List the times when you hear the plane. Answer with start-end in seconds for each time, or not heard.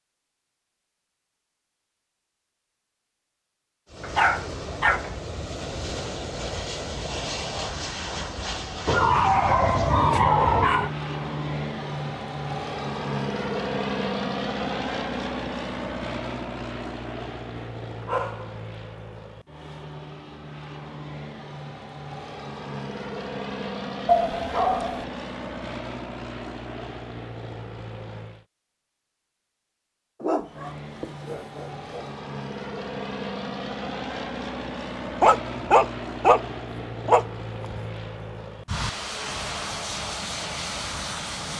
3.9-28.4, 30.4-41.5.